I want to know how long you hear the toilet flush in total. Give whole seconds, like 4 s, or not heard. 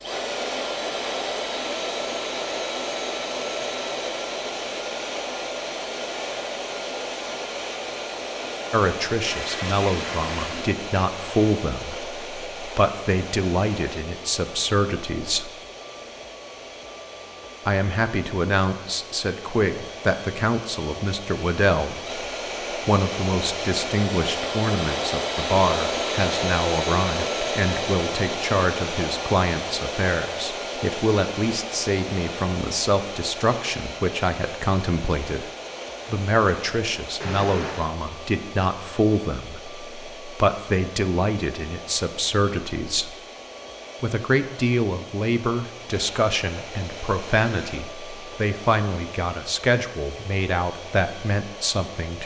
2 s.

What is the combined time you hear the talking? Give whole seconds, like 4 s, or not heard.
40 s.